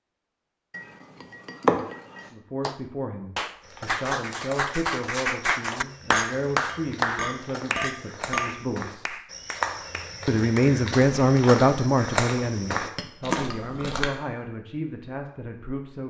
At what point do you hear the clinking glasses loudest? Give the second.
2 s.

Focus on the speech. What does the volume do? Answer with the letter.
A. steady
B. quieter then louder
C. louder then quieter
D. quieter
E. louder
C.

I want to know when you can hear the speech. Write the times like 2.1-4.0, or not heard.
2.3-9.2, 10.2-16.0.